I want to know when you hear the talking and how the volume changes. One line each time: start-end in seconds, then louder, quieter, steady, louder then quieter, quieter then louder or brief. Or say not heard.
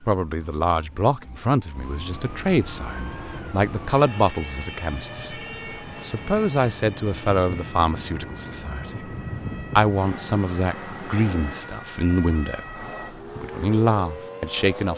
0.0-14.9 steady.